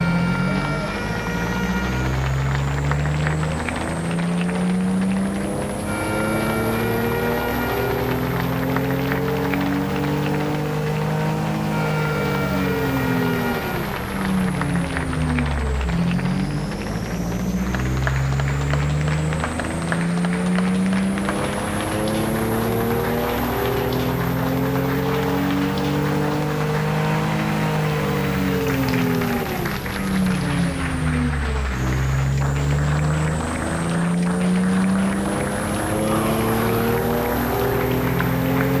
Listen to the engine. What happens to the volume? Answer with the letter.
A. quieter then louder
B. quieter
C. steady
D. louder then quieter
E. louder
C.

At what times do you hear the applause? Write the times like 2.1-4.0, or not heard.
0.0-38.7.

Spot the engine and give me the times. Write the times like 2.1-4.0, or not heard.
0.0-38.7.